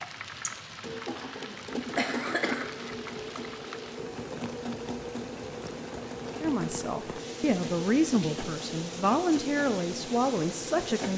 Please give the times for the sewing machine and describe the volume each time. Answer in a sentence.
The sewing machine can be heard from 0.0 to 11.1 s, at a steady volume.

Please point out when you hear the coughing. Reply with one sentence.
The coughing can be heard from 1.3 to 2.9 s.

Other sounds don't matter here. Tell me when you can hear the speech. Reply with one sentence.
The speech can be heard from 6.4 to 11.1 s.